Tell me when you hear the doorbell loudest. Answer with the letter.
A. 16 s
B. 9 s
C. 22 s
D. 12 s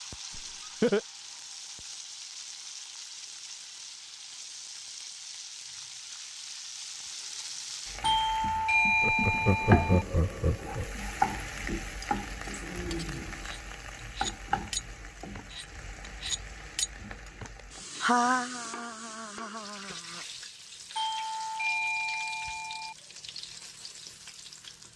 B.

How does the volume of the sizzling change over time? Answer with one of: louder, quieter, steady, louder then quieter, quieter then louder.
louder then quieter.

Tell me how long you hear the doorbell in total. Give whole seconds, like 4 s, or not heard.
4 s.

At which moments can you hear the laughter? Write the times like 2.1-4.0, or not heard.
0.3-1.0, 9.0-10.9, 18.0-20.2.